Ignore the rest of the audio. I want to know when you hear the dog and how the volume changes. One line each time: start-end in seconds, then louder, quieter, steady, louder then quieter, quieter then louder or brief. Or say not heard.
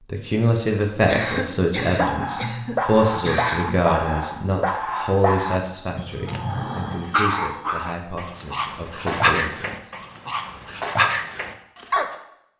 1.9-12.2 steady.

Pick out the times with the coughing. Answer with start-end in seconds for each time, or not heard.
1.1-3.8.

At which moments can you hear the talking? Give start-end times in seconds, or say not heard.
0.1-9.9.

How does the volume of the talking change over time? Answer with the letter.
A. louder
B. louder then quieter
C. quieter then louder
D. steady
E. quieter
E.